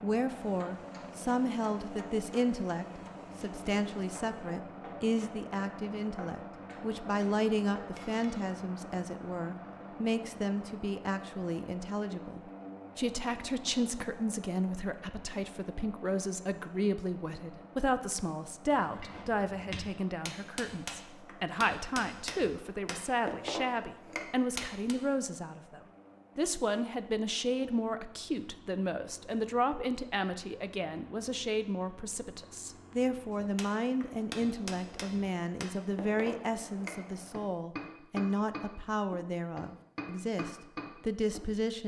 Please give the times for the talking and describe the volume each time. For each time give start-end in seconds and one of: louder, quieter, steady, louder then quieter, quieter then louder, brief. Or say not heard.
0.0-41.8 steady.